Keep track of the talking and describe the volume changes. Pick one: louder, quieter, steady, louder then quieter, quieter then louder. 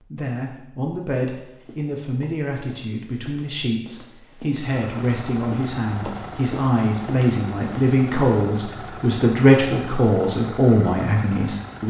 louder.